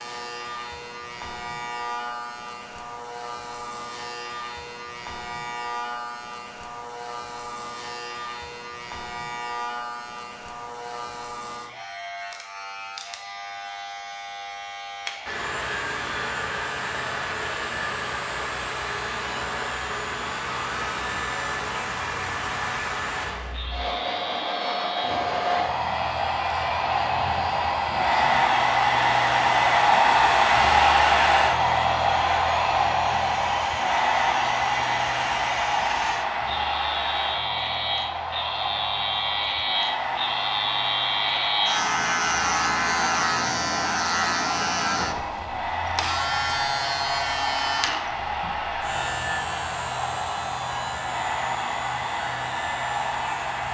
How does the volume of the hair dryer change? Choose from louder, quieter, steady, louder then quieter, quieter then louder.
louder then quieter.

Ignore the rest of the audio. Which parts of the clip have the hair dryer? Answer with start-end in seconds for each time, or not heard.
15.2-53.6.